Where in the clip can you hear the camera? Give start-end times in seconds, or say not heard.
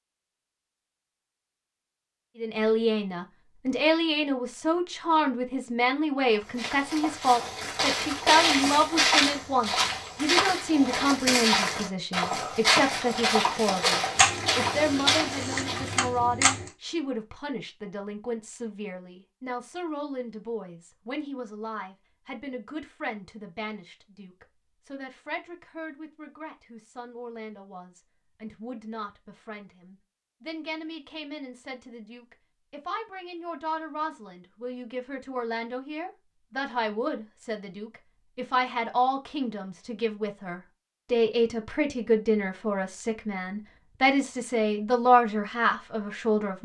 14.2-16.7.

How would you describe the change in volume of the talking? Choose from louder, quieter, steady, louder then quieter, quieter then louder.
quieter then louder.